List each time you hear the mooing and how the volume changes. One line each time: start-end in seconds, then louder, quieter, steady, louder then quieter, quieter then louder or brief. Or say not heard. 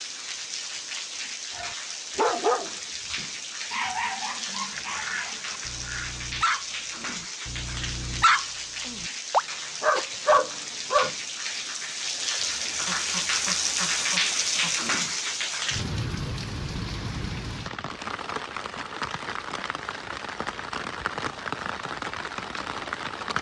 not heard.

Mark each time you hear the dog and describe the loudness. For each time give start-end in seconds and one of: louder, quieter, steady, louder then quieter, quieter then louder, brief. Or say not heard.
1.6-11.1 quieter then louder.